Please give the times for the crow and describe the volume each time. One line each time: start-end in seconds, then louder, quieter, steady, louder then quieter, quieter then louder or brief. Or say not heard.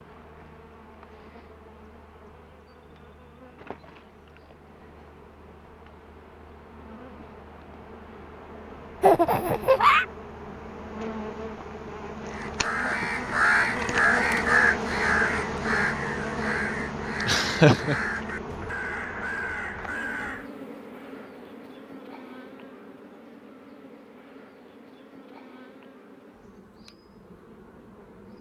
12.3-20.5 quieter.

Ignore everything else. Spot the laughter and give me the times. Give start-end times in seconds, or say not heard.
9.0-10.1, 17.2-17.9.